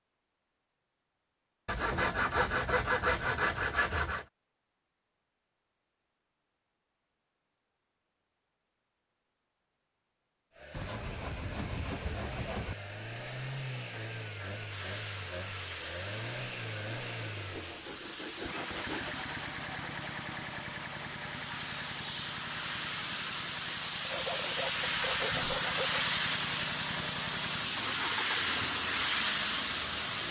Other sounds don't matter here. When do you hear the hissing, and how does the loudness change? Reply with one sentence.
You can hear the hissing from 14.7 to 30.2 s, getting louder.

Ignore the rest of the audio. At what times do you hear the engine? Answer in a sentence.
The engine can be heard from 10.5 to 30.2 s.